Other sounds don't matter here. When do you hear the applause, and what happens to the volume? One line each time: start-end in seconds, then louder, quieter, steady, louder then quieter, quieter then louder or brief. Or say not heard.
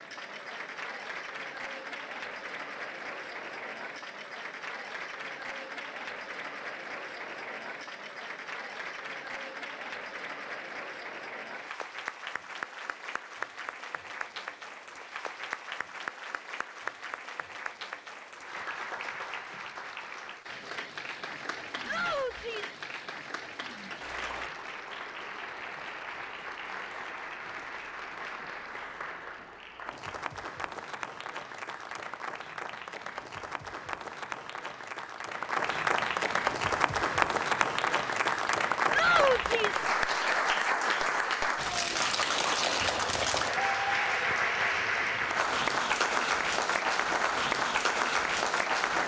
0.0-49.0 louder.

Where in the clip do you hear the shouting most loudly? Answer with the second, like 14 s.
39 s.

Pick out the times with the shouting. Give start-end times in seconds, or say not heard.
21.9-22.8, 38.9-39.9.